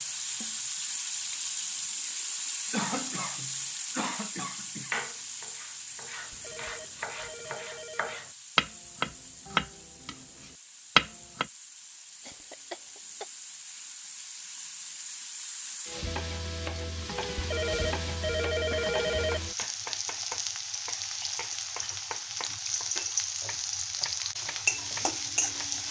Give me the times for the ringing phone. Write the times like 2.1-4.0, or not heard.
6.3-8.2, 17.4-19.4.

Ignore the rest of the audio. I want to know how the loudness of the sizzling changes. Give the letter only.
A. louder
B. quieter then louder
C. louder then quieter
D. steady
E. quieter
B.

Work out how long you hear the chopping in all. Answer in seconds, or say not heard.
13 s.